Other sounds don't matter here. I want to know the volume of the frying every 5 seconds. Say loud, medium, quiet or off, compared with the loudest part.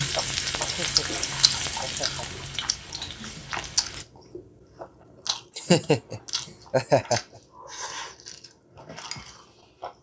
loud, off.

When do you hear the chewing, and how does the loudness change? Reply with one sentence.
The chewing can be heard from 0.0 to 9.9 s, getting quieter.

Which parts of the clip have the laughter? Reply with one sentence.
The laughter can be heard from 0.6 to 2.5 s and from 5.5 to 7.2 s.